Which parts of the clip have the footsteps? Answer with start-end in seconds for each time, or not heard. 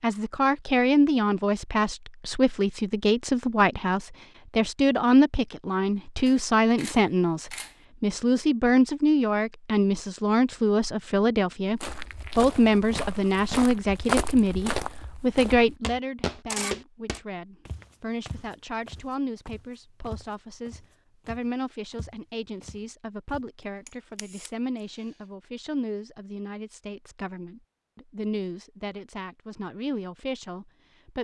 11.8-23.4.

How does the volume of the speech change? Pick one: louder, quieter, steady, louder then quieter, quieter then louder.
quieter.